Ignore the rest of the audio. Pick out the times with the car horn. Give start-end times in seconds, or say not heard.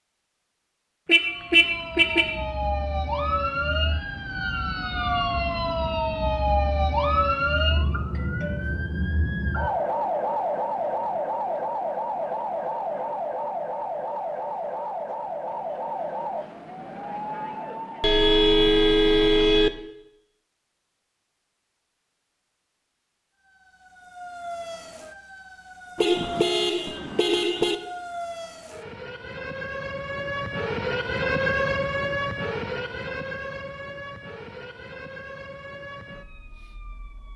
1.1-2.4, 18.0-19.7, 25.9-27.8.